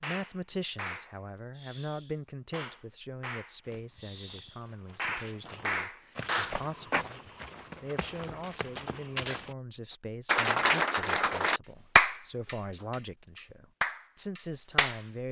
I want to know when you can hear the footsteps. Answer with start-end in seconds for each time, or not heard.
3.6-9.6.